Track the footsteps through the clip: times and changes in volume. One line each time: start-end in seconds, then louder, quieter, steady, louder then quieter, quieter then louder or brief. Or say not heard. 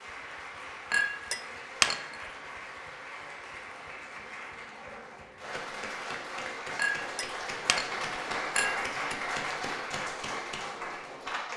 not heard.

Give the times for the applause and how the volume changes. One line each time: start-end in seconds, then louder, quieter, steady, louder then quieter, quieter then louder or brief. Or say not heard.
0.0-11.5 louder.